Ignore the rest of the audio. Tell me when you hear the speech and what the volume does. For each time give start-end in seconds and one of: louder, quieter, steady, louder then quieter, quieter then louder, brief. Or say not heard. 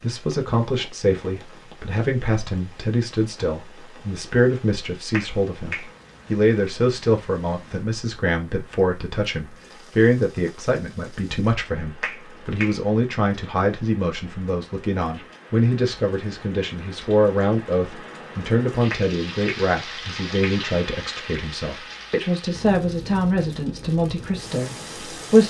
0.0-25.4 steady.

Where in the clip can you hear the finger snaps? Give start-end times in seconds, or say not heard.
5.1-6.7, 12.0-12.8, 18.9-20.6.